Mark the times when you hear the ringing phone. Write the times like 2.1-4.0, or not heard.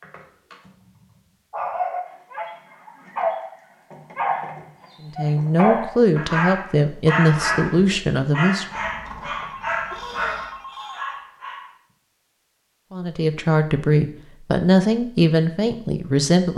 9.3-11.2.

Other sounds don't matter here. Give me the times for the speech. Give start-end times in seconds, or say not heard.
5.0-8.7, 12.9-16.5.